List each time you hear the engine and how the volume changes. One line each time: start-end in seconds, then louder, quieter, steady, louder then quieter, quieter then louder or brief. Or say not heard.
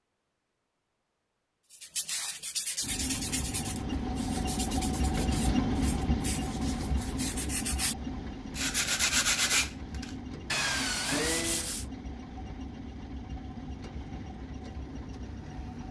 2.8-15.8 quieter.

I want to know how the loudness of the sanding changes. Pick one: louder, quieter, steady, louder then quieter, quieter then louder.
quieter then louder.